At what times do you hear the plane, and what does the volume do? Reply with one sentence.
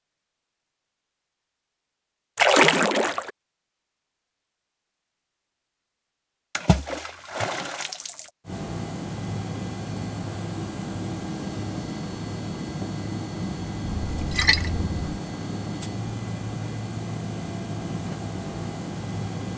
The plane can be heard from 8.4 to 19.5 s, at a steady volume.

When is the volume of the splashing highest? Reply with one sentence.
The volume of the splashing peaks at 3 seconds.